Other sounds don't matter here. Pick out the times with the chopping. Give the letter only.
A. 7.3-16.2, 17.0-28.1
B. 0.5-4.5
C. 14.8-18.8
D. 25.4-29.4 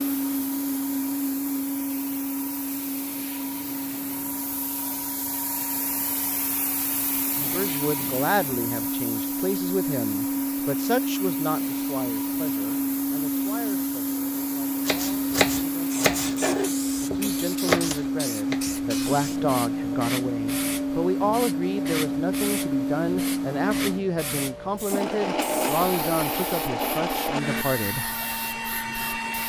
C.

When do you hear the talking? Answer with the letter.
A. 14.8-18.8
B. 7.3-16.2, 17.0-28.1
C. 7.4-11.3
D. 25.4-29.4
B.